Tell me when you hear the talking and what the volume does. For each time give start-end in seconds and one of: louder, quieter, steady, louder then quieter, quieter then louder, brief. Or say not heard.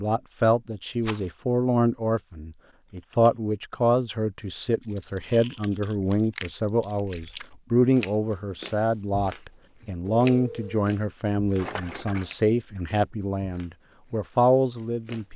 0.0-15.3 steady.